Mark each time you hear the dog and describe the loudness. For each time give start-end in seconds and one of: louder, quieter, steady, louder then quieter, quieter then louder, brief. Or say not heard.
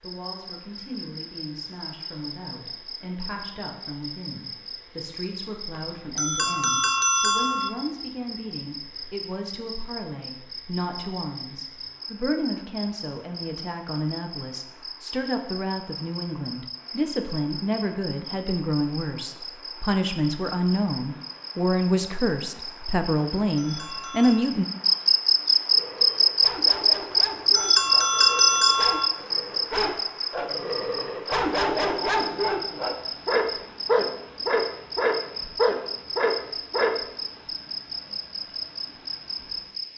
25.7-37.0 louder.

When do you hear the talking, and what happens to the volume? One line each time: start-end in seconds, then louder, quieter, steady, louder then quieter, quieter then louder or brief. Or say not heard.
0.0-24.6 louder.